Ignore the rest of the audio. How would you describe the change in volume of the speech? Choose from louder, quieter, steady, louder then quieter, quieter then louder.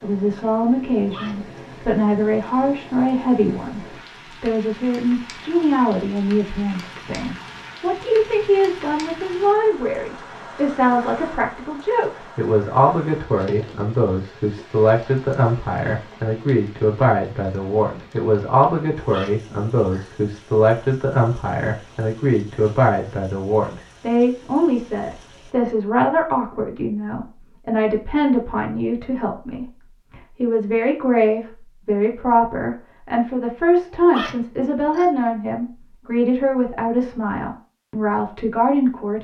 steady.